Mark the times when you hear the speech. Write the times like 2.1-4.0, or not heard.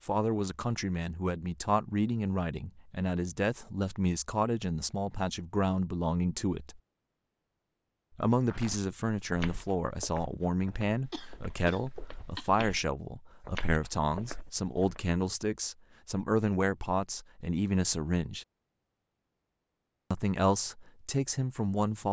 0.1-6.8, 8.2-18.4, 20.1-22.0.